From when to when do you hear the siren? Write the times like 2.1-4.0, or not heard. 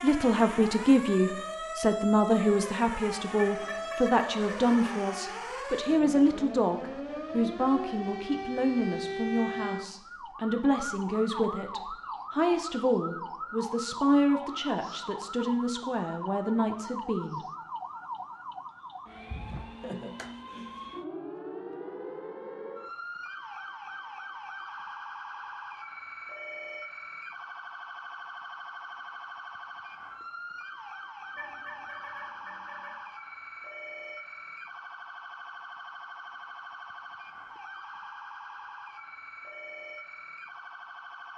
0.0-41.3.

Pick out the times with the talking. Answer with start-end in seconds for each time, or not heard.
0.0-17.4.